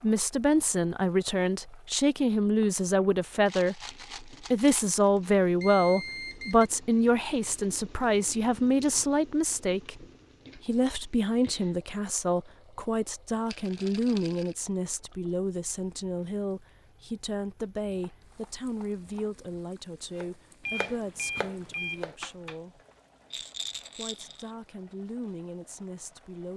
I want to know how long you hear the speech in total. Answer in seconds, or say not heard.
25 s.